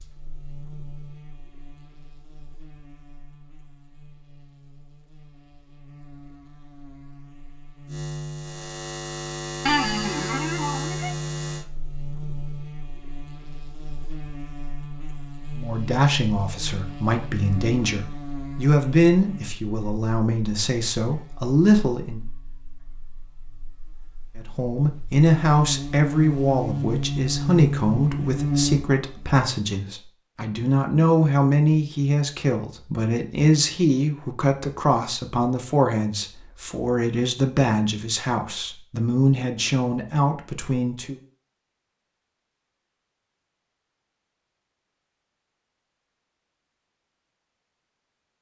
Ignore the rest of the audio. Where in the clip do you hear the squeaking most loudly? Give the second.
10 s.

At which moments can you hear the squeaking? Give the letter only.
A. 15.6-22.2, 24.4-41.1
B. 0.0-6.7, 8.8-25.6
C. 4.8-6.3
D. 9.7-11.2
D.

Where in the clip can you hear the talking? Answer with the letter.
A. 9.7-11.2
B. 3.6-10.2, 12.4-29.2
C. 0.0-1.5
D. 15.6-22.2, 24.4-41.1
D.